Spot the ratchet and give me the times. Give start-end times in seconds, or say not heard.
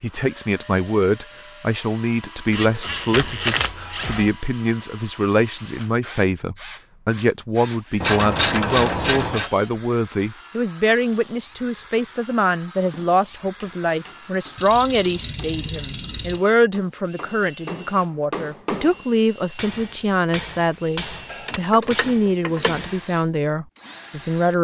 2.5-4.3, 8.0-9.5, 14.6-16.4, 21.3-22.9.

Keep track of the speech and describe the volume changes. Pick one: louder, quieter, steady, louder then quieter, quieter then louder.
steady.